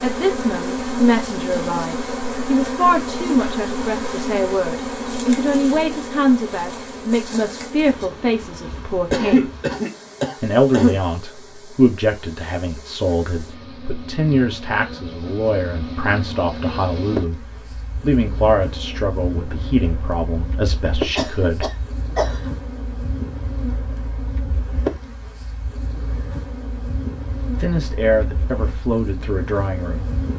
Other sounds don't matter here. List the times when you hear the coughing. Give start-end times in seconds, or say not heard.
9.1-11.0, 21.1-22.6.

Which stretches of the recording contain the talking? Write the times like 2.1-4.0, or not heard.
0.0-9.5, 10.4-17.4, 18.0-21.7, 27.6-30.1.